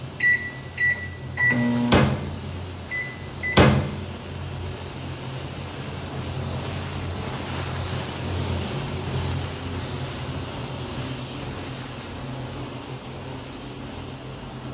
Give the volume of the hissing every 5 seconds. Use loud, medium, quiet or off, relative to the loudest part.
medium, loud, loud.